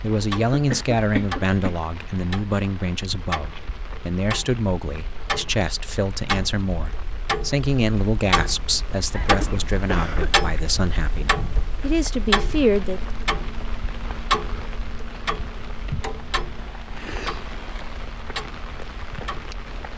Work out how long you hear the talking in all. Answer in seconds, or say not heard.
13 s.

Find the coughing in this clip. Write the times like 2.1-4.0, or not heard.
0.5-1.8, 9.1-10.3, 16.9-17.6.